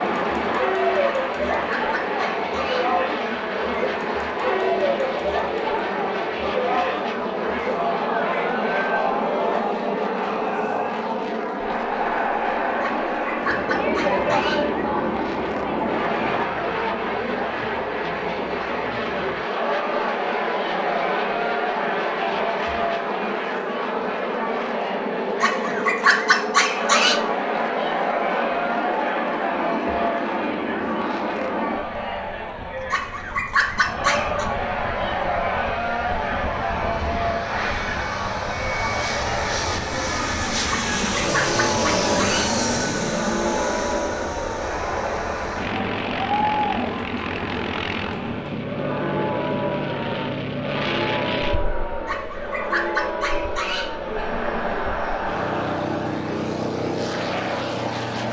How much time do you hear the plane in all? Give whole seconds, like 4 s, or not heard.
58 s.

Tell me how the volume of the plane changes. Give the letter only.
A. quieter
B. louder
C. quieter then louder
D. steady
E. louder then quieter
D.